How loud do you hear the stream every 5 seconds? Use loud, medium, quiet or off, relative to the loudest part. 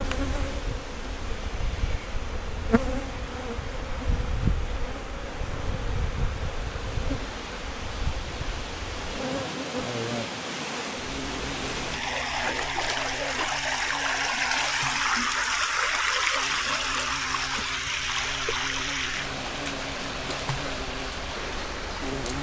quiet, medium, loud, loud, medium.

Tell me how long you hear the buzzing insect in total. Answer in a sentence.
The buzzing insect can be heard for 22 seconds in total.